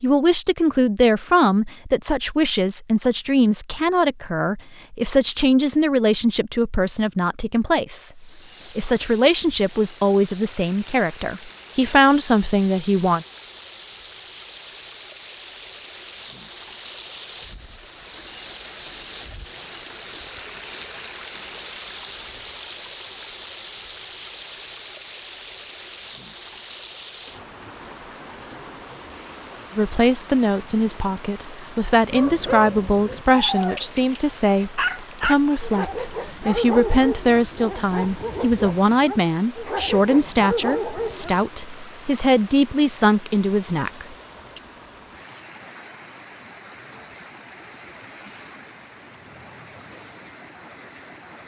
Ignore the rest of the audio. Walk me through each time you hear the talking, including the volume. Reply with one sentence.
You can hear the talking from 0.0 to 13.2 s, at a steady volume; and from 29.8 to 44.6 s, at a steady volume.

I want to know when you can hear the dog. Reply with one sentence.
You can hear the dog from 32.0 to 41.5 s.